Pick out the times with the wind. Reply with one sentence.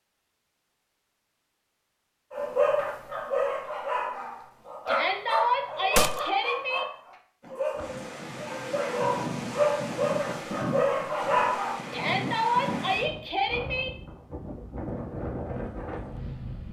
You can hear the wind from 7.8 to 16.6 s.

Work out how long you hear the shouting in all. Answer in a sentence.
You can hear the shouting for 4 seconds altogether.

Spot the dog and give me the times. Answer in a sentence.
You can hear the dog from 2.4 to 11.8 s.